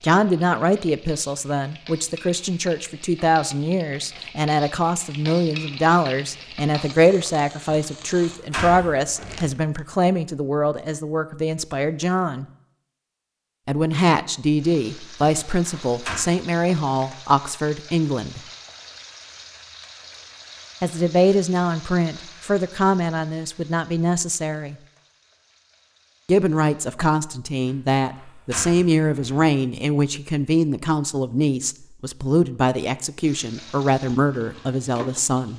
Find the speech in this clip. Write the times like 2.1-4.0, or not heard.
0.0-12.4, 13.7-18.4, 20.8-24.8, 26.2-35.5.